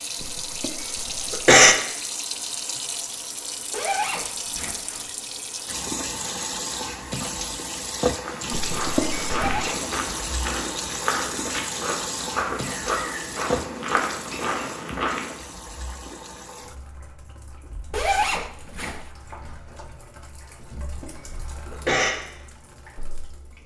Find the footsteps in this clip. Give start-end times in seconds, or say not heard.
8.2-15.3.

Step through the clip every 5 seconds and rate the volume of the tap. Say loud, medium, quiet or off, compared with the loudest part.
loud, loud, loud, quiet, quiet.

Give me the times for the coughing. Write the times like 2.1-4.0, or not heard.
0.2-1.8, 8.5-9.7, 20.6-22.1.